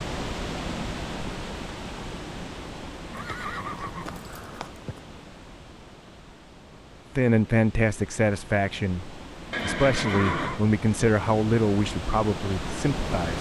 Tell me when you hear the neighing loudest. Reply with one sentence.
The loudest moment of the neighing is at 10 seconds.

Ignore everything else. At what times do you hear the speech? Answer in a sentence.
The speech can be heard from 7.2 to 13.3 s.